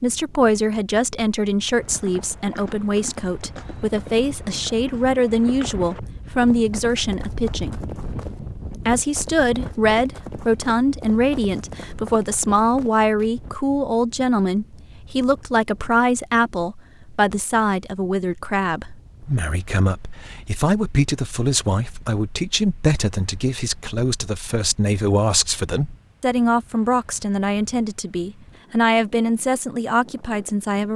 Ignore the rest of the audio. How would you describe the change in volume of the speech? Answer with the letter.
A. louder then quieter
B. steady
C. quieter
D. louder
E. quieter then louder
B.